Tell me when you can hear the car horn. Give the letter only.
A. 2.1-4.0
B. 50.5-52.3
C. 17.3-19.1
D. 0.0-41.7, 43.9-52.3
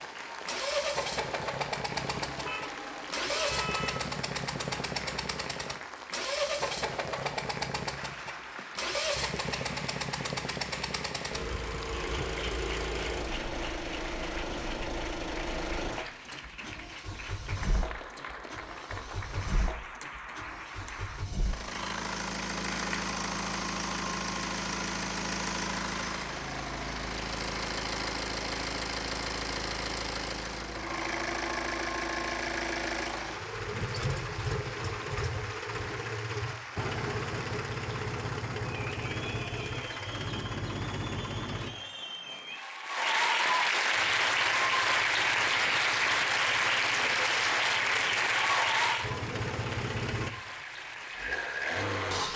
A.